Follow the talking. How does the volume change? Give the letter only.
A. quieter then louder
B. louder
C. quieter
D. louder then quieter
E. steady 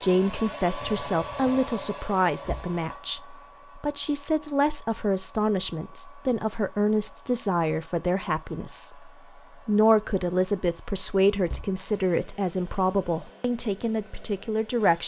E.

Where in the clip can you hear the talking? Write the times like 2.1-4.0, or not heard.
0.0-15.0.